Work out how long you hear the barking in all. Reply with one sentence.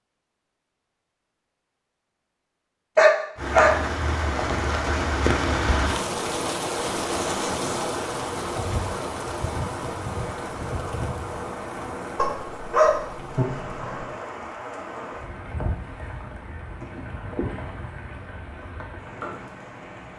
You can hear the barking for 3 seconds altogether.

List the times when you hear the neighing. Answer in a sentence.
You can't hear the neighing here.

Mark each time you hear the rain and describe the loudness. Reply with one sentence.
You can hear the rain from 3.4 to 20.1 s, getting quieter.